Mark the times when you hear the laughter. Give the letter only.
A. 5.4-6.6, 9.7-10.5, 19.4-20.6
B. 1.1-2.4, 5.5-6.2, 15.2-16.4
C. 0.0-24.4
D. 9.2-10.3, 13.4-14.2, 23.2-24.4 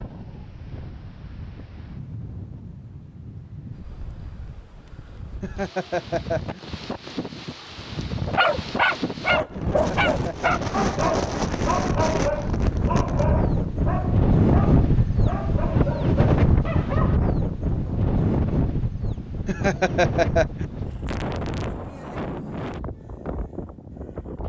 A.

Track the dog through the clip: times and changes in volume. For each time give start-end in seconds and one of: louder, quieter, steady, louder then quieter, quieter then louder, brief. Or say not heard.
8.2-17.2 quieter.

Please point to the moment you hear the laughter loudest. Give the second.
20 s.